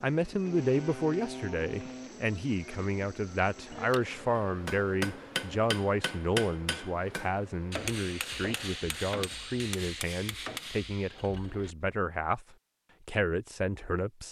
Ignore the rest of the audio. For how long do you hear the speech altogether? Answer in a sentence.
The speech can be heard for 14 seconds in total.